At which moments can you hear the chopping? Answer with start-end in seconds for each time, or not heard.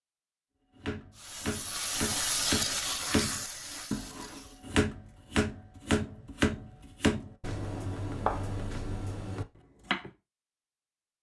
0.8-10.1.